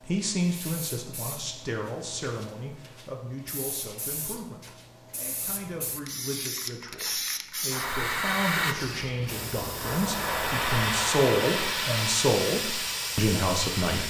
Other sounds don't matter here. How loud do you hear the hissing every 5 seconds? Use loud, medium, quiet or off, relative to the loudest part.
quiet, loud, loud.